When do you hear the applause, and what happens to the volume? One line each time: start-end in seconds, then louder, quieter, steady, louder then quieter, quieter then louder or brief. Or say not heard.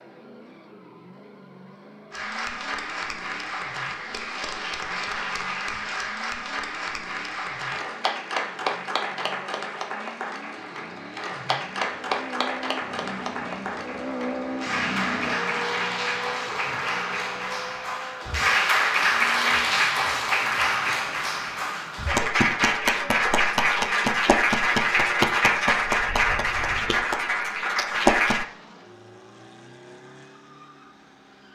2.1-28.4 louder.